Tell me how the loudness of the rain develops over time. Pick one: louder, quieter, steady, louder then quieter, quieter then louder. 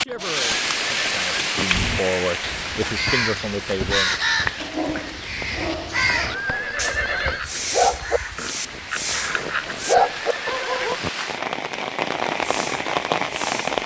quieter then louder.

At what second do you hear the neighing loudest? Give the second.
7 s.